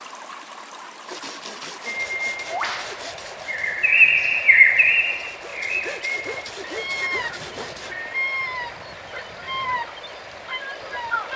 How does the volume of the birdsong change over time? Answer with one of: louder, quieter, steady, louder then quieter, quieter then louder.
quieter.